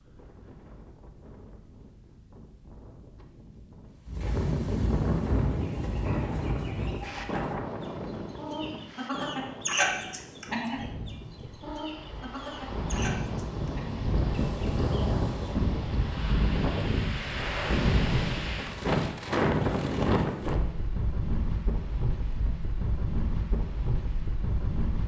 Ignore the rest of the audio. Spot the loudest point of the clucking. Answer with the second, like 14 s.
10 s.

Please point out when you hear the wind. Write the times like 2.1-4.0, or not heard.
0.0-25.0.